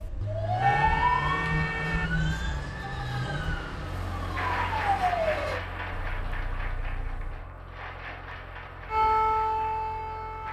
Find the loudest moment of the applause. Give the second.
5 s.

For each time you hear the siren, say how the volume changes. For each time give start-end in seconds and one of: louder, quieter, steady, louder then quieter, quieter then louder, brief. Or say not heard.
0.0-5.6 quieter then louder
8.8-10.4 brief.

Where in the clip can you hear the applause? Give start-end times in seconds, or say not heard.
4.3-10.4.